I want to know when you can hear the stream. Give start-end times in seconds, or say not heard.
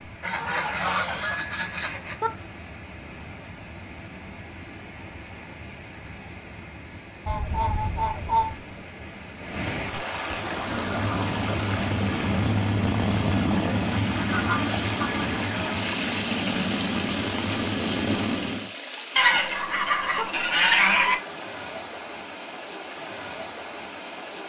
0.0-24.4.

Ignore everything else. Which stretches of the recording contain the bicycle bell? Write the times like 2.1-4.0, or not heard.
1.1-2.3, 19.4-20.2.